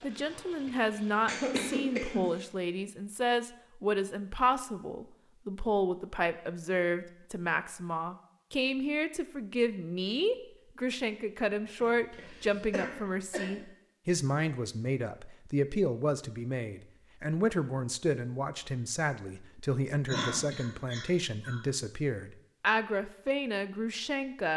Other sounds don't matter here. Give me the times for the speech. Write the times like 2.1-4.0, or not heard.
0.0-24.5.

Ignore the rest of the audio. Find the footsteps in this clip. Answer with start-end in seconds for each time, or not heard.
not heard.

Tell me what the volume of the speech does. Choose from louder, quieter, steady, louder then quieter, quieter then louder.
steady.